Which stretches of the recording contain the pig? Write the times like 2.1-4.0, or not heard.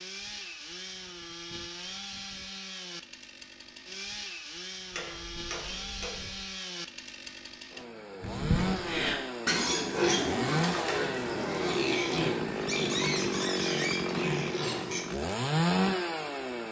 8.2-15.1.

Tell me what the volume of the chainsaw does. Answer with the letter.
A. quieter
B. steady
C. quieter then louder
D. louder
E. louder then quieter
D.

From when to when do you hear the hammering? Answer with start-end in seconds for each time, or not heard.
4.9-6.5.